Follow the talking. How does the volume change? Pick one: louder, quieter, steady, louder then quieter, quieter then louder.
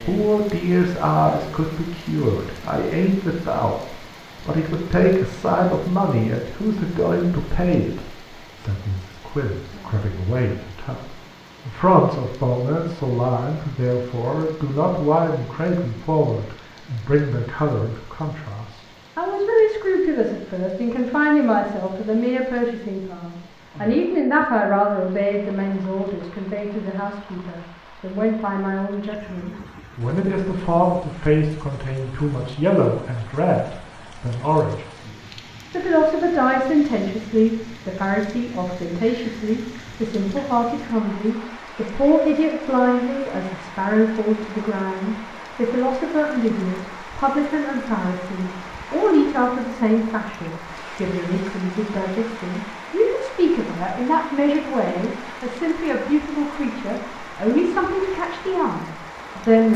steady.